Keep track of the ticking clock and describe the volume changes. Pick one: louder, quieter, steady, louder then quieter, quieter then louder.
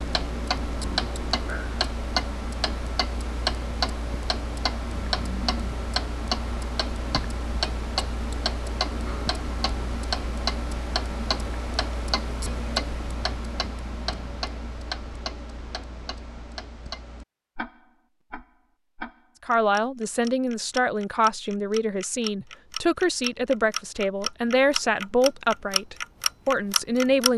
quieter then louder.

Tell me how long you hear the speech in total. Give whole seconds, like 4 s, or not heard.
8 s.